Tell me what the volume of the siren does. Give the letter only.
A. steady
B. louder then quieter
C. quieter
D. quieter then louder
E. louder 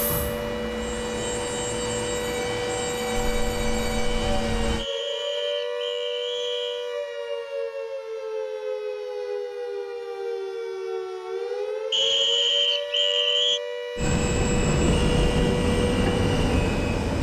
A.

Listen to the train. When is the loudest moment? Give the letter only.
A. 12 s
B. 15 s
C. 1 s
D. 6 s
B.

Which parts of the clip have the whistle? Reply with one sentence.
You can hear the whistle from 4.8 to 6.9 s and from 11.9 to 13.6 s.